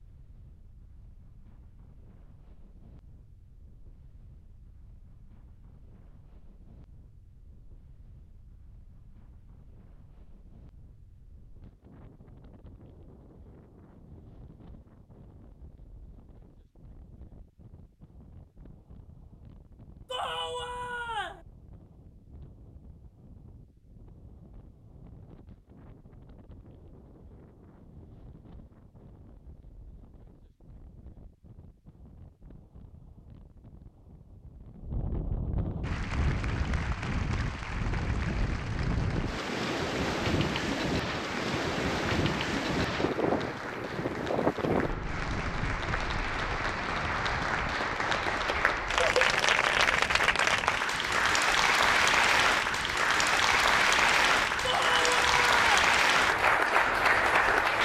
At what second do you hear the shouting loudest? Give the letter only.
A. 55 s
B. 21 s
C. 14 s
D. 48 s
A.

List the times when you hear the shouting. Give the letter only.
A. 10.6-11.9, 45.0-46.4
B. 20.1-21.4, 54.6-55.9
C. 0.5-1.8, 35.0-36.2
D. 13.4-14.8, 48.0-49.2
B.